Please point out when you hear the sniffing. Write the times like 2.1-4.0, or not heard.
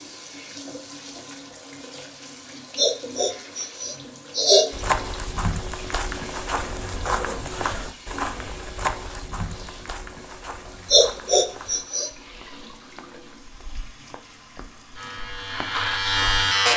2.8-4.7, 10.9-12.1.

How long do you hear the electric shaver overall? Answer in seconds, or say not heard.
2 s.